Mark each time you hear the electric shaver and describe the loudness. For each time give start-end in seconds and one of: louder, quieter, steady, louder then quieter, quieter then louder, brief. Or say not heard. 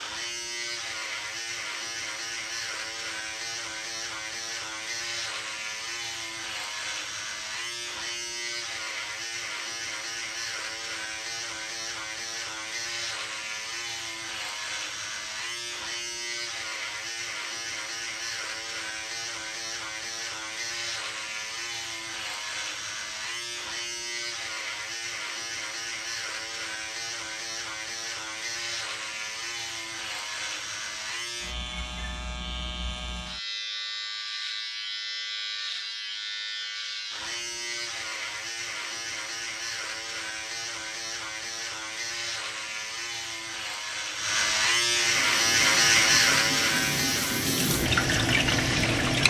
0.0-49.2 louder.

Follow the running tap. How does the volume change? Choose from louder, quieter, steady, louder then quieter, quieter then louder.
louder.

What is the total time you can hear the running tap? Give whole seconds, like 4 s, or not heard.
4 s.